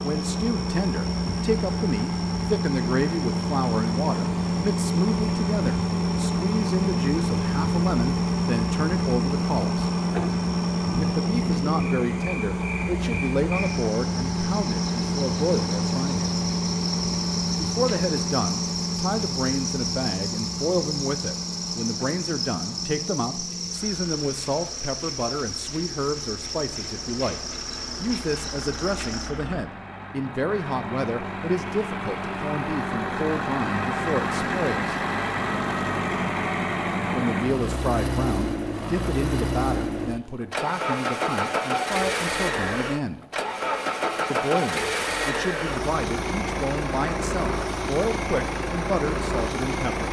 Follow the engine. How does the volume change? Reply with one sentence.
The loudness of the engine goes down, then up.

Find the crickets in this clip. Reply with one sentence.
You can hear the crickets from 0.0 to 29.4 s.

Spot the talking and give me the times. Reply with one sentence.
The talking can be heard from 0.0 to 9.8 s, from 10.9 to 16.3 s, from 17.6 to 35.0 s, from 37.1 to 43.2 s and from 44.3 to 50.0 s.